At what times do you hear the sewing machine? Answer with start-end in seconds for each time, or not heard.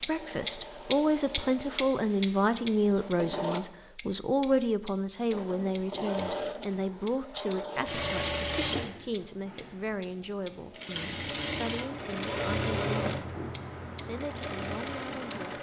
0.0-3.6, 5.3-15.5.